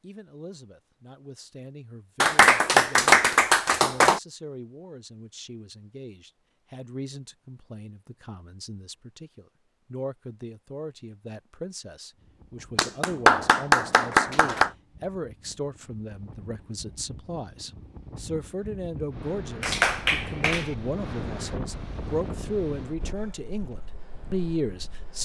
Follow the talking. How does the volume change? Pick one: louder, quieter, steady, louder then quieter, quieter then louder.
louder.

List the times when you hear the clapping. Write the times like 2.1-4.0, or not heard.
2.2-4.2, 12.8-14.7, 19.6-20.7.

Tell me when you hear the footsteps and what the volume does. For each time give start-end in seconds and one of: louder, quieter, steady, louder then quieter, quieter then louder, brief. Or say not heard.
not heard.